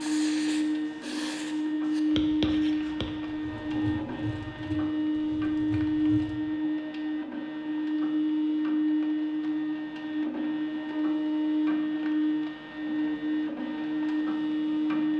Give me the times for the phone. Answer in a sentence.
The phone can't be heard in this clip.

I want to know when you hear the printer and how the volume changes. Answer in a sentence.
You can hear the printer from 0.0 to 15.1 s, at a steady volume.